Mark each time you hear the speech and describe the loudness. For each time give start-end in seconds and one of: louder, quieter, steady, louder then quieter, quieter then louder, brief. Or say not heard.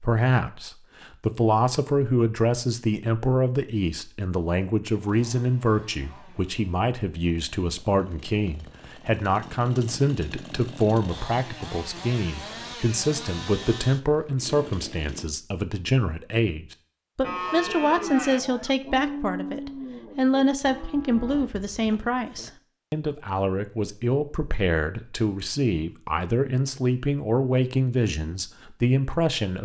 0.0-29.6 steady.